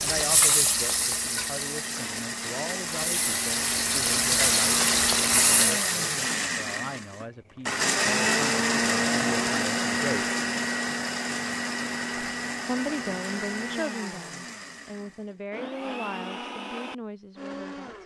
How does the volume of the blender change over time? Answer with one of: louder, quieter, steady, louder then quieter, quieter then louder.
louder then quieter.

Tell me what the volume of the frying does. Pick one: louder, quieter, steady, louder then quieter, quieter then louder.
quieter then louder.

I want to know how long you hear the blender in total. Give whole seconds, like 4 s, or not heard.
18 s.